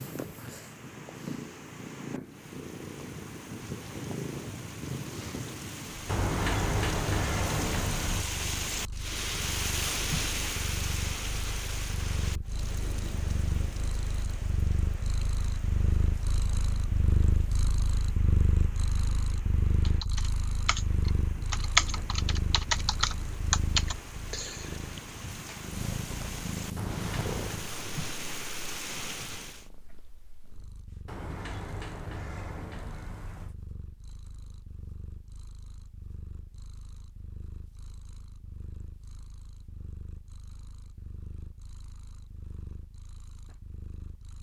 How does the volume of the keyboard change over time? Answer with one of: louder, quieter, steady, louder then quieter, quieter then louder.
louder then quieter.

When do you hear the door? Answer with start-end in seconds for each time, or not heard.
6.0-8.2, 26.8-27.6, 31.1-33.5.